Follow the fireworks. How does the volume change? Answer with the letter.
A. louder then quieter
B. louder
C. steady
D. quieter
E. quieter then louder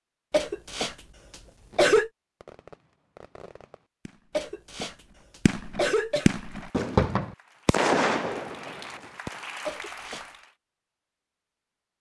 E.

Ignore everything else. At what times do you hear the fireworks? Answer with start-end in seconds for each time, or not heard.
1.7-9.4.